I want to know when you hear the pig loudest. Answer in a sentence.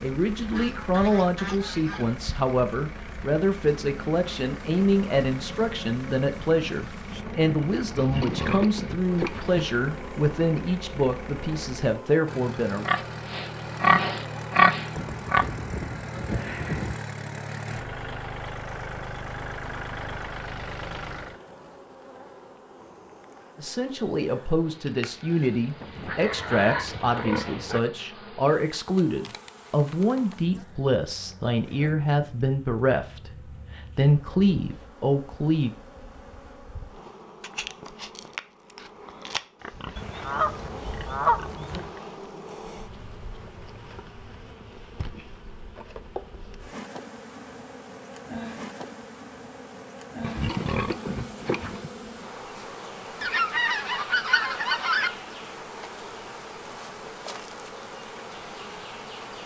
The loudest moment of the pig is at 15 seconds.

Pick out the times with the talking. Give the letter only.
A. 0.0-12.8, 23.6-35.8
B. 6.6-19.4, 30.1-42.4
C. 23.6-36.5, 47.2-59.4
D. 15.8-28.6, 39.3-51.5
A.